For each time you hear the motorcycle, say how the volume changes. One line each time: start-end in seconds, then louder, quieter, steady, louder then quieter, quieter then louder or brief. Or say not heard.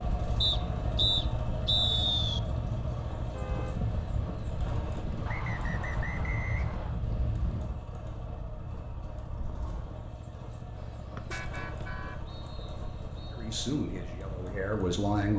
0.0-15.3 quieter.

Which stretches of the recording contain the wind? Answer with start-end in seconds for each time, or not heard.
0.0-7.8.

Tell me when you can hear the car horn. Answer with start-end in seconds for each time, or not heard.
3.1-3.8, 10.8-12.2.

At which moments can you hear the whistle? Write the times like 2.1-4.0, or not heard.
0.4-2.4, 5.2-7.0, 11.8-13.5.